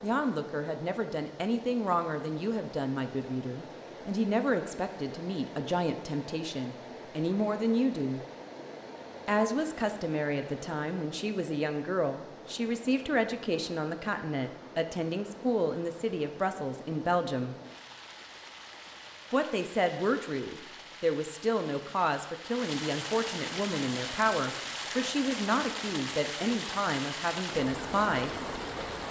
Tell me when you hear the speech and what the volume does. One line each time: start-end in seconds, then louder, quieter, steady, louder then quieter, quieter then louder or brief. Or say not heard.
0.0-8.2 steady
9.2-17.6 steady
19.3-28.4 steady.